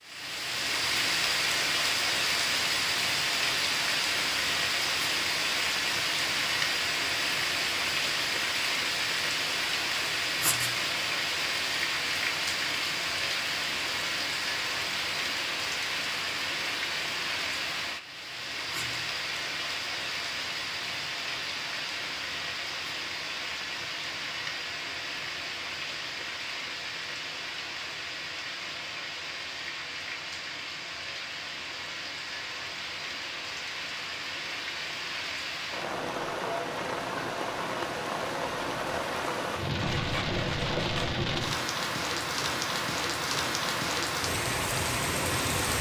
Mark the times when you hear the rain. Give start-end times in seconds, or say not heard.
0.0-45.7.